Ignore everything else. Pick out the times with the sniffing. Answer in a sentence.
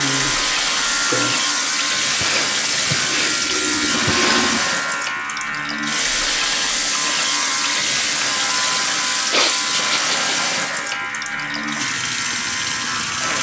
The sniffing can be heard from 2.2 to 4.7 s and from 9.3 to 10.3 s.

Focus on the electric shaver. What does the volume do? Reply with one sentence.
The volume of the electric shaver stays about the same.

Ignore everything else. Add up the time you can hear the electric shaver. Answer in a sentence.
The electric shaver can be heard for 13 seconds in total.